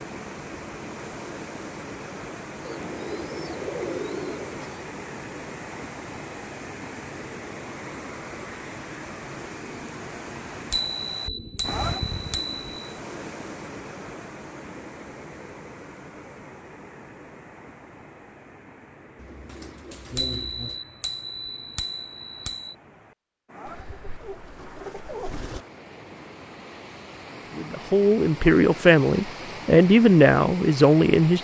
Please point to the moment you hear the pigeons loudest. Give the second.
4 s.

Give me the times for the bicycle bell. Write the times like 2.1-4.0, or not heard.
10.7-12.8, 20.1-22.7.